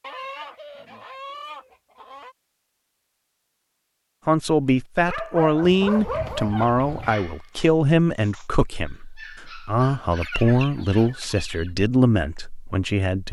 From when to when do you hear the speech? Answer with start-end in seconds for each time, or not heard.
4.2-13.2.